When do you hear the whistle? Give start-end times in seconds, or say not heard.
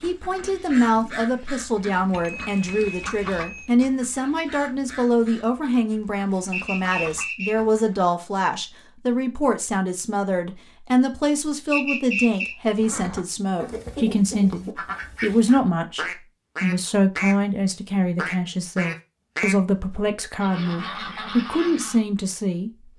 6.5-7.6, 11.7-12.6.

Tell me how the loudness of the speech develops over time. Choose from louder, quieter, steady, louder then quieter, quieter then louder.
steady.